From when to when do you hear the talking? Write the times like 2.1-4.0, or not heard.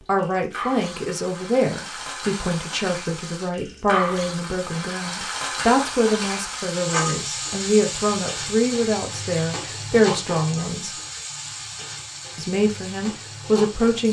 0.1-10.9, 12.3-14.0.